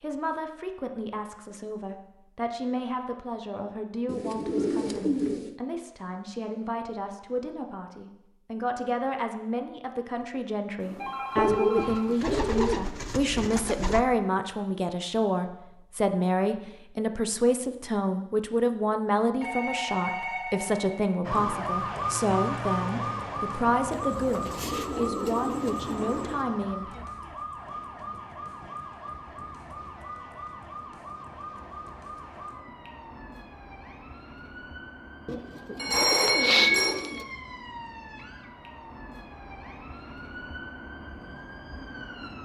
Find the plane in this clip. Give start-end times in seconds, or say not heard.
not heard.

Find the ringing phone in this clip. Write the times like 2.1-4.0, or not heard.
10.8-12.3, 19.4-21.1, 35.8-37.0.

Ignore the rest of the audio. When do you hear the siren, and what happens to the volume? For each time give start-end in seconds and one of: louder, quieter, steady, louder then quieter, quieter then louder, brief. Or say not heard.
21.2-42.4 quieter.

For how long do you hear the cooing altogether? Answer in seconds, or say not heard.
9 s.